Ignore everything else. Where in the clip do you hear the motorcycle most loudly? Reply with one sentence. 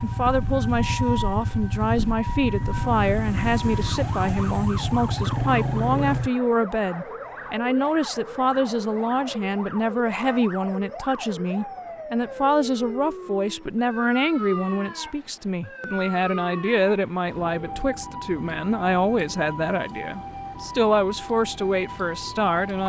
The volume of the motorcycle peaks at 6 seconds.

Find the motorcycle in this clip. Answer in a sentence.
The motorcycle can be heard from 0.0 to 6.3 s.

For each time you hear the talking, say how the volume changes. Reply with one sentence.
The talking can be heard from 0.0 to 22.8 s, at a steady volume.